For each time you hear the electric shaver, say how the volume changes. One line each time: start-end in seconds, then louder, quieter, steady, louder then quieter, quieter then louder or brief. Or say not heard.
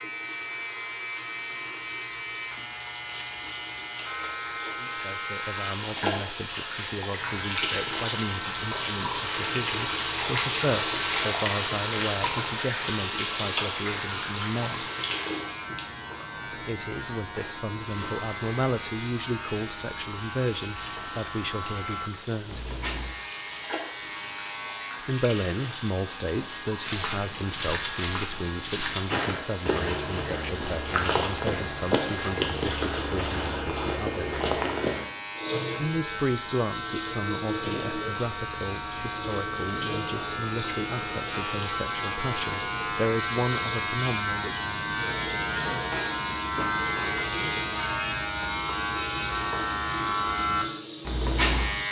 0.0-51.8 louder.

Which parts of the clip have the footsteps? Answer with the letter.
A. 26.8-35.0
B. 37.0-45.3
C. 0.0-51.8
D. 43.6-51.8
A.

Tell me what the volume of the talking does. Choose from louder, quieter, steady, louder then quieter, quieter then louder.
steady.